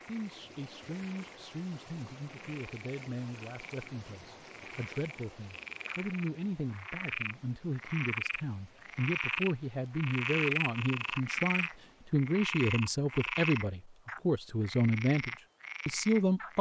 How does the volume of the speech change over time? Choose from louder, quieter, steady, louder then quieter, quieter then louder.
louder.